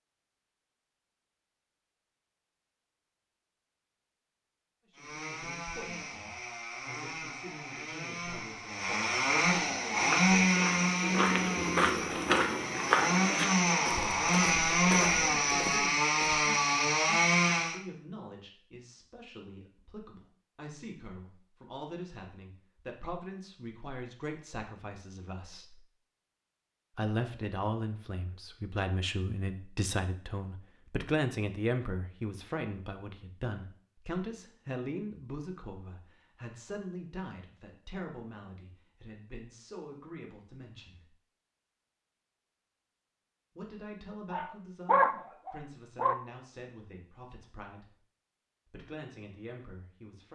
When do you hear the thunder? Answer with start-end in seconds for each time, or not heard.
not heard.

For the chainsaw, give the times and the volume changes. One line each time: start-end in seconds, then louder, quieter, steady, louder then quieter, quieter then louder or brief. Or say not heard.
5.0-17.8 louder.